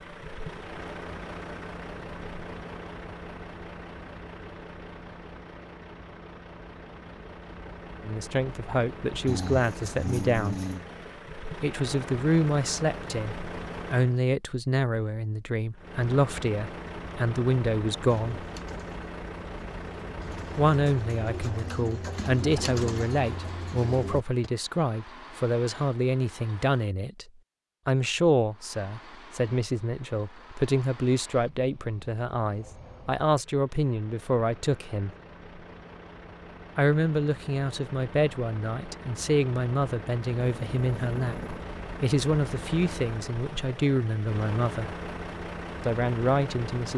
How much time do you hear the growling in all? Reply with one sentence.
The growling can be heard for 3 seconds in total.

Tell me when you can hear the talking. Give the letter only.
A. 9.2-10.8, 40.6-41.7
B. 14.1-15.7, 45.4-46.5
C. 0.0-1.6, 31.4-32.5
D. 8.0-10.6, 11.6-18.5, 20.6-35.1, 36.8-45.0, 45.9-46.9
D.